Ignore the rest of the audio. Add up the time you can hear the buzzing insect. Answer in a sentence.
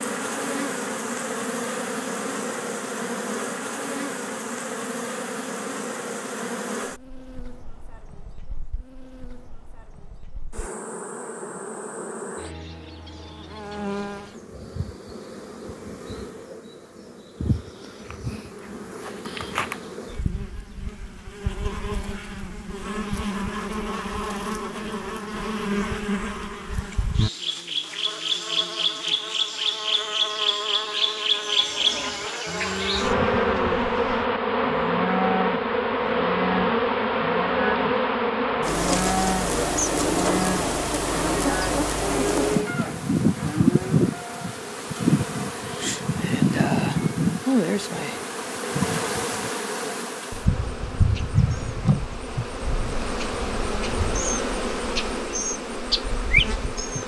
You can hear the buzzing insect for 57 seconds altogether.